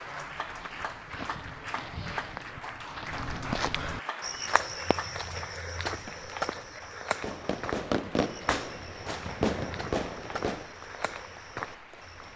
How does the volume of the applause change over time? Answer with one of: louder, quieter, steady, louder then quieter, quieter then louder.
quieter.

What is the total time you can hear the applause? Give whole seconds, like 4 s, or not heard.
12 s.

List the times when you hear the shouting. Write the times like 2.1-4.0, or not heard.
not heard.